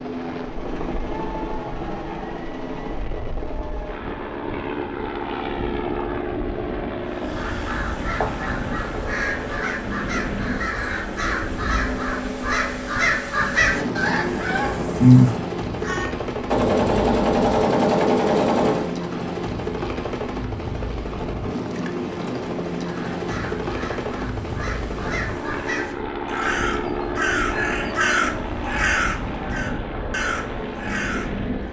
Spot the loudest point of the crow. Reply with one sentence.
The loudest moment of the crow is at 15 seconds.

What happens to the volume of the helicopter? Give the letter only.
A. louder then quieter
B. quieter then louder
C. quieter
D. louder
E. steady
E.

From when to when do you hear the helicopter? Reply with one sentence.
You can hear the helicopter from 0.0 to 31.6 s.